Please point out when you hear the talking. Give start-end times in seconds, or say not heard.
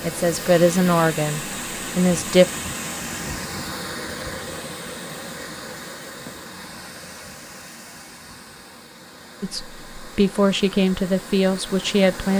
0.0-2.5, 9.4-12.3.